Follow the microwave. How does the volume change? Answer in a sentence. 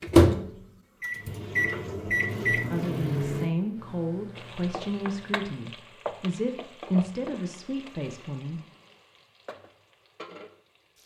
The volume of the microwave goes up, then down.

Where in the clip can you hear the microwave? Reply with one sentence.
You can hear the microwave from 0.0 to 5.5 s.